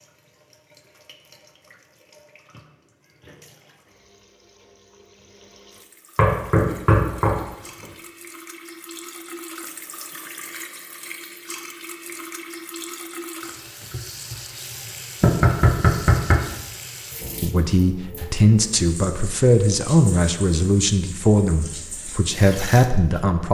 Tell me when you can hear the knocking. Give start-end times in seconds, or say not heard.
6.2-7.8, 15.2-16.4.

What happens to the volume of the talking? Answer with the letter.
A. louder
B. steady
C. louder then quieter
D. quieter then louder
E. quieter
B.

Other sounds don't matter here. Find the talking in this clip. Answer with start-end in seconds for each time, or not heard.
17.4-23.4.